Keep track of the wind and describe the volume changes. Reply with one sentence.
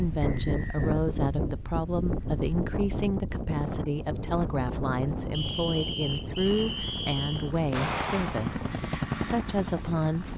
The volume of the wind goes down.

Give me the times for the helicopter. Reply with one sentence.
The helicopter can be heard from 6.4 to 10.3 s.